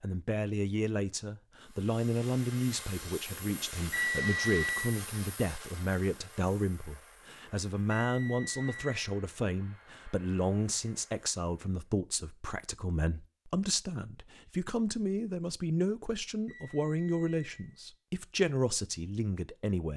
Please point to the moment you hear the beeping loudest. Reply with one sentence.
The loudest moment of the beeping is at 4 seconds.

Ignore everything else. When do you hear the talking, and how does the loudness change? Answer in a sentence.
The talking can be heard from 0.0 to 19.9 s, at a steady volume.